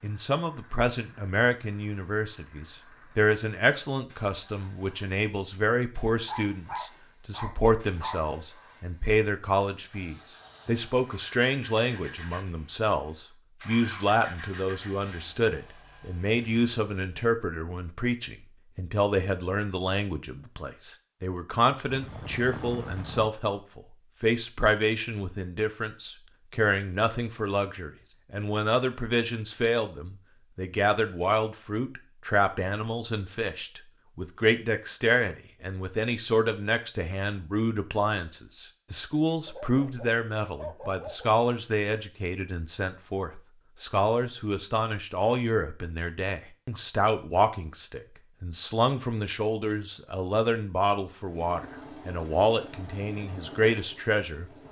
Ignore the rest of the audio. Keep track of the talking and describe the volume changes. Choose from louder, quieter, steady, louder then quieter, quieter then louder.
steady.